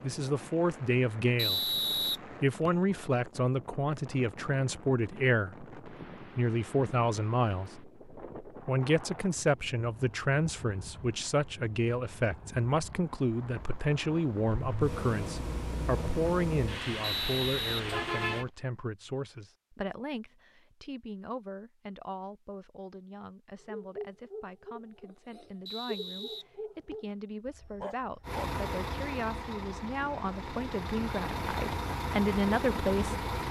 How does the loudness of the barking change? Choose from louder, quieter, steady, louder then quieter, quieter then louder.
quieter then louder.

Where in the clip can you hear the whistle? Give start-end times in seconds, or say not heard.
1.4-2.7, 17.0-18.5, 25.6-27.1.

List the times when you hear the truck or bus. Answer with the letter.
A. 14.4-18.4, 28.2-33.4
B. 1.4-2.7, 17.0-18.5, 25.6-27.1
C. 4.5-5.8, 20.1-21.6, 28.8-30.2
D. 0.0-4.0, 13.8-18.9
A.